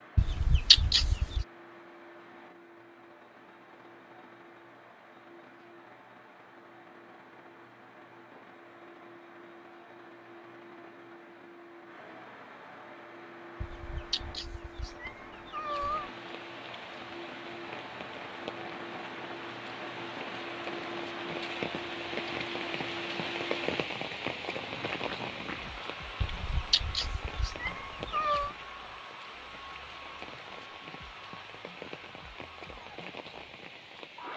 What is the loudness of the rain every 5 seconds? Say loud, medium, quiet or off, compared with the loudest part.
off, off, off, medium, loud, medium, medium.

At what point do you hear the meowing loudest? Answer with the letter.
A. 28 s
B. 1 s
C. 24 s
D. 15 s
B.